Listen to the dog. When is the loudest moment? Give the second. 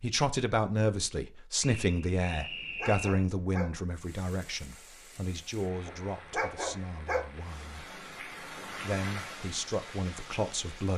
7 s.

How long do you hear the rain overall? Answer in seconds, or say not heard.
7 s.